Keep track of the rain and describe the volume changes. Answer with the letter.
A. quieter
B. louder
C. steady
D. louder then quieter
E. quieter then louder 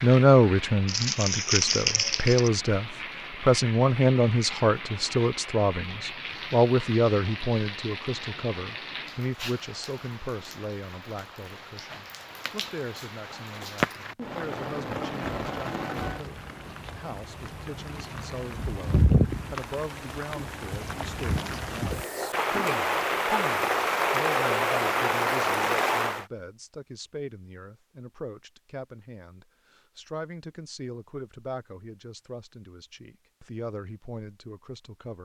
B.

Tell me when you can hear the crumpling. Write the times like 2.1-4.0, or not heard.
0.8-2.5.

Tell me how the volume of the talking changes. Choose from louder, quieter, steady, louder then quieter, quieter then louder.
quieter.